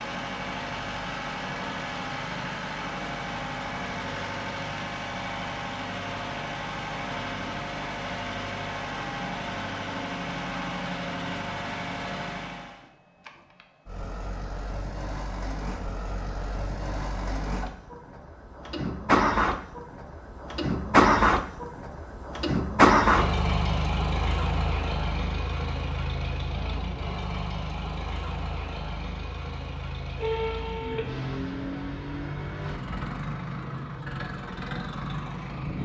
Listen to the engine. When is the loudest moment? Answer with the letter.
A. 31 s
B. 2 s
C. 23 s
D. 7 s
C.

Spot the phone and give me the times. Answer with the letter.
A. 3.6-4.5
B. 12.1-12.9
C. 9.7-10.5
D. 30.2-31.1
D.